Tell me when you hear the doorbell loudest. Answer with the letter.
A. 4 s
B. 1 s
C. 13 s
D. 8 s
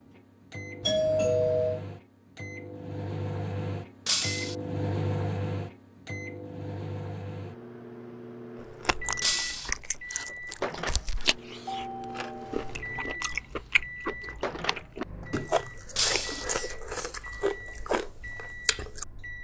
B.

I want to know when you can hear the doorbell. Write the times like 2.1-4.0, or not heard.
0.8-1.8, 11.7-12.6.